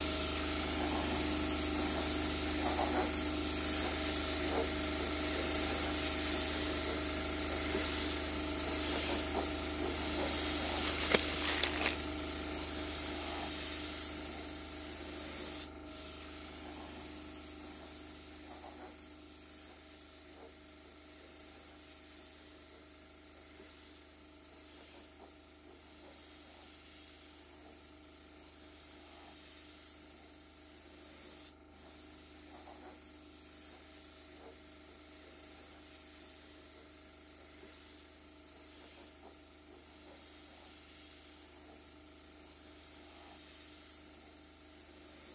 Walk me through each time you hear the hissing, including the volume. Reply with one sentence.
The hissing can be heard from 0.0 to 45.3 s, getting quieter.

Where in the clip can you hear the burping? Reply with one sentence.
The burping can't be heard in this clip.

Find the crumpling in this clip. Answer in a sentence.
You can hear the crumpling from 10.8 to 12.1 s.